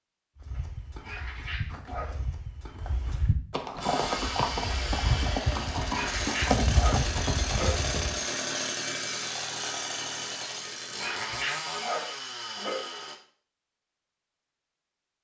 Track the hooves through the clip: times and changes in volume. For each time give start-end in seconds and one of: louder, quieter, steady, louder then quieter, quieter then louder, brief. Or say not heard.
0.3-8.2 louder.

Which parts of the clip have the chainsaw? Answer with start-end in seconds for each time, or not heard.
3.8-13.2.